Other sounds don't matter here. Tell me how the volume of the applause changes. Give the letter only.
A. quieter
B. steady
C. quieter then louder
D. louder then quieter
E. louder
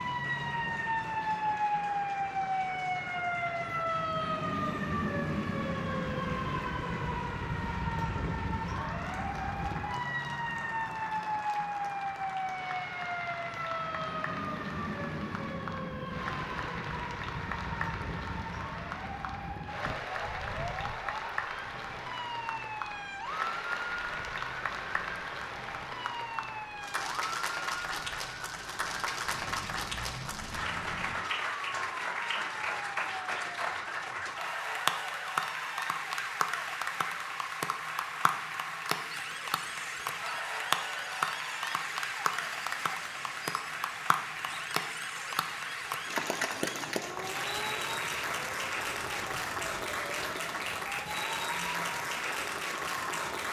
E.